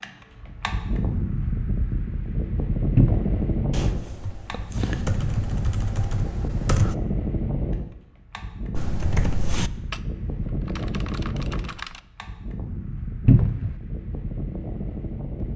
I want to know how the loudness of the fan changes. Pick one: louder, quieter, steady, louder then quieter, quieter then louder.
quieter.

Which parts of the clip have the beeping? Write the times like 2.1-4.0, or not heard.
not heard.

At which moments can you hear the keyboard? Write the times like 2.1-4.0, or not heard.
3.7-7.0, 8.8-12.0.